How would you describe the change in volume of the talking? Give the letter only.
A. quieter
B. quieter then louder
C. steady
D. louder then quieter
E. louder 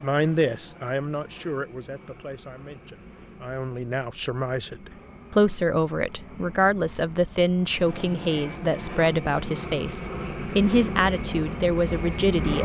E.